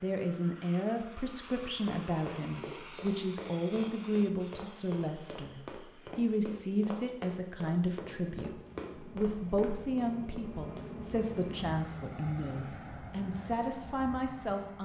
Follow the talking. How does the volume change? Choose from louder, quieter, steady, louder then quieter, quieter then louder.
steady.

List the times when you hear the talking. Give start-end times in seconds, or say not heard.
0.0-14.8.